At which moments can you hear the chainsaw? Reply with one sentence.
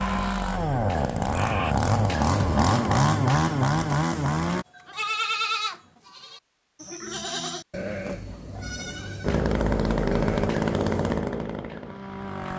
The chainsaw can be heard from 0.0 to 4.7 s and from 9.2 to 12.5 s.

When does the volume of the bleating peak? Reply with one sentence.
The volume of the bleating peaks at 5 seconds.